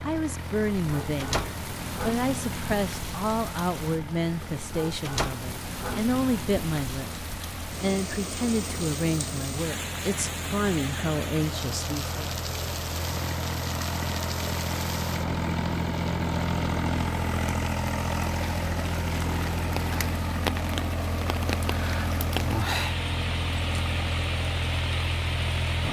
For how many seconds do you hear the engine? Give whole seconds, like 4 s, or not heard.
26 s.